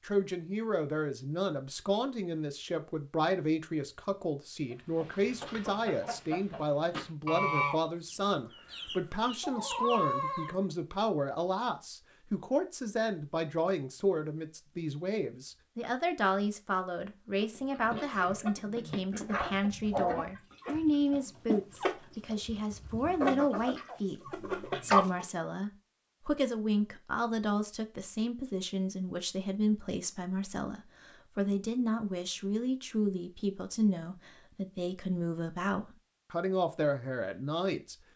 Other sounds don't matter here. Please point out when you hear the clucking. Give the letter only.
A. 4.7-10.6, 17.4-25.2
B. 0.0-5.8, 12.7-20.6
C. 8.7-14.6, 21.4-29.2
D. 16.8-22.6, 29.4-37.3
A.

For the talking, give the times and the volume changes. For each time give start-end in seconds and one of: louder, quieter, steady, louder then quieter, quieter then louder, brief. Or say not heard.
0.0-38.0 steady.